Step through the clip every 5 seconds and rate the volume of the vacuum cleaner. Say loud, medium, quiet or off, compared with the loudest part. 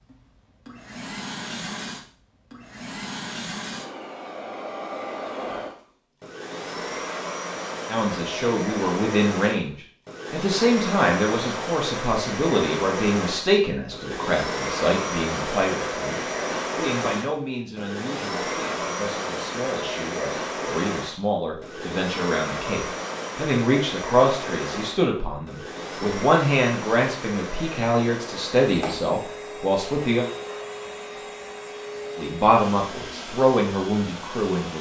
medium, loud, loud, loud, loud, medium, medium.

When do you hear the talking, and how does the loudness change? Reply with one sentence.
You can hear the talking from 7.8 to 30.2 s, getting quieter then louder; and briefly from 32.1 to 34.7 s.